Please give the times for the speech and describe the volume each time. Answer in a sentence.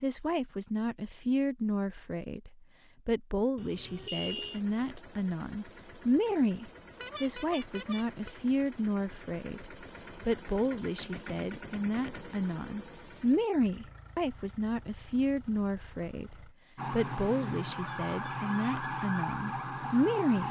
You can hear the speech from 0.0 to 20.4 s, at a steady volume.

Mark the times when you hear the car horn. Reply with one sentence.
The car horn can be heard from 3.5 to 4.6 s, from 7.0 to 8.3 s and from 17.7 to 18.8 s.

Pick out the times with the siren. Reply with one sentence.
You can hear the siren from 16.8 to 20.4 s.